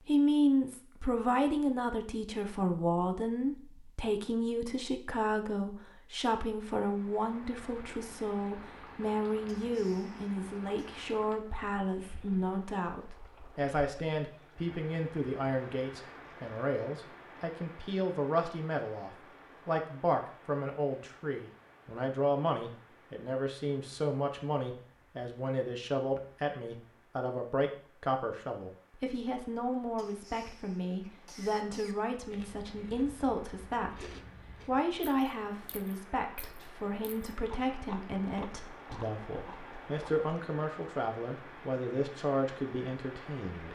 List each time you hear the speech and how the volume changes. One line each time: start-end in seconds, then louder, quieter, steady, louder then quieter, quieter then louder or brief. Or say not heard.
0.1-43.7 steady.